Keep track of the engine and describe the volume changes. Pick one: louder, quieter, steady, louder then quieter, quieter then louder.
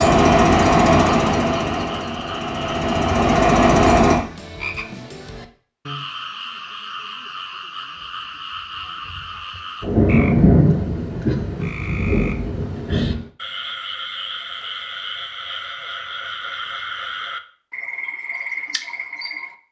quieter then louder.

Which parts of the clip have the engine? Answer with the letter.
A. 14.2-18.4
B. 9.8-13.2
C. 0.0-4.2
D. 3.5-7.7
C.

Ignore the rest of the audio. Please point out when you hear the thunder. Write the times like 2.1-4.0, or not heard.
9.8-13.2.